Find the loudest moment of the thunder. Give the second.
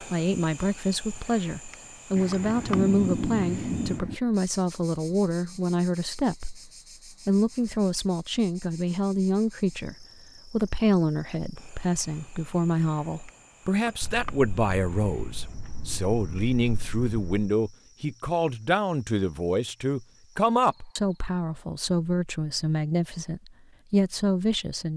3 s.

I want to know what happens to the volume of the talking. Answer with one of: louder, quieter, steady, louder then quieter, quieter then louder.
steady.